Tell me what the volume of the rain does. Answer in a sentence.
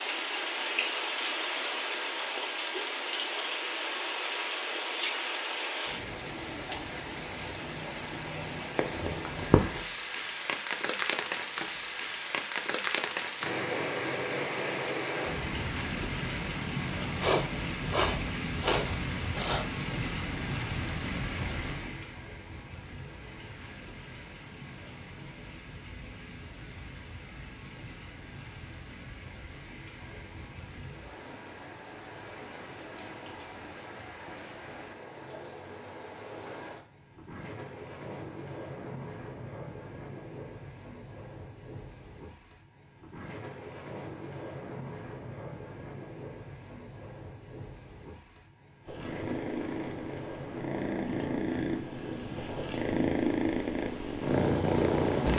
The volume of the rain goes down.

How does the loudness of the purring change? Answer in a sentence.
The volume of the purring goes up.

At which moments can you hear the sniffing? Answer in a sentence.
The sniffing can be heard from 17.1 to 19.7 s.